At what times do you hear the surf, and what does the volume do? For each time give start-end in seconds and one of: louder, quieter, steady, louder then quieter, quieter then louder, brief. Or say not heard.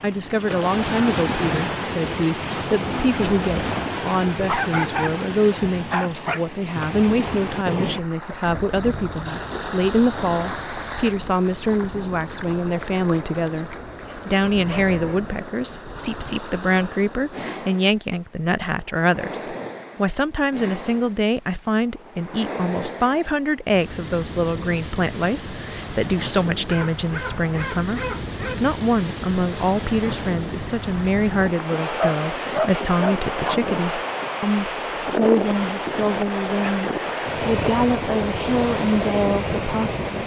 0.0-40.2 quieter then louder.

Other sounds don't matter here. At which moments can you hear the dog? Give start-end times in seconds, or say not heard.
4.5-6.5, 14.0-15.2, 26.6-28.6, 31.8-33.6.